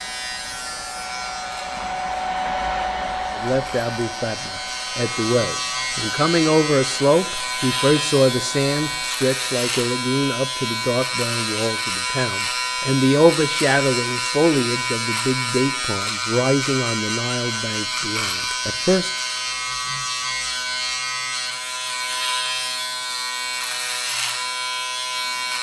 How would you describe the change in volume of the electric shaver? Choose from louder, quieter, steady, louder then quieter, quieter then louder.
louder.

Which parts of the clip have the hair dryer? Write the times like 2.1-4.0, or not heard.
0.0-9.1.